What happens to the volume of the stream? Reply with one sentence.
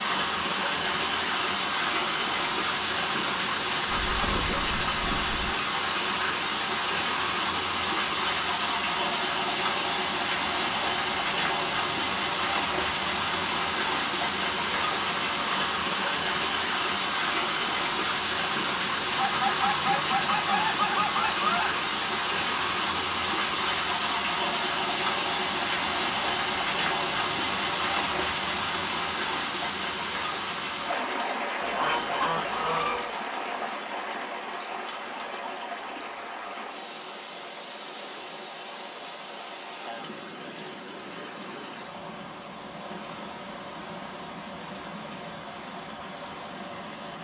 The loudness of the stream goes down.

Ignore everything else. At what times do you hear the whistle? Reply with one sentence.
You can't hear the whistle here.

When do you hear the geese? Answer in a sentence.
You can hear the geese from 3.9 to 5.5 s, from 19.1 to 21.9 s and from 31.6 to 33.1 s.